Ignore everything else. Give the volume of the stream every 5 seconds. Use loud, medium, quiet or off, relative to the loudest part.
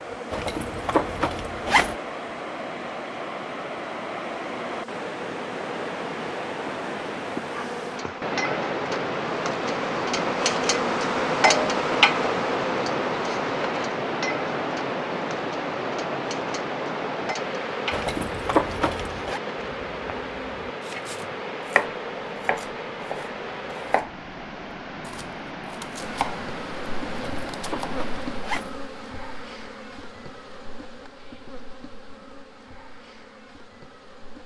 medium, loud, loud, loud, medium, medium, off.